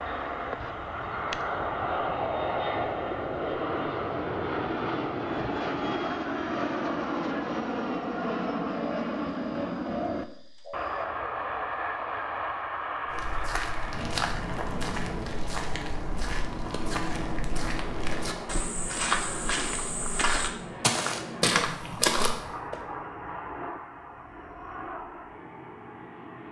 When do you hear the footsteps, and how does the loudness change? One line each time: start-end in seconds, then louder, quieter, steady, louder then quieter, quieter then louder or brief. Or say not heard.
13.1-22.8 louder.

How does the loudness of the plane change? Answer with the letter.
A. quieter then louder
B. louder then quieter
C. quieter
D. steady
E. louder
C.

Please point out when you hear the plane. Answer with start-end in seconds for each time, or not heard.
0.0-26.4.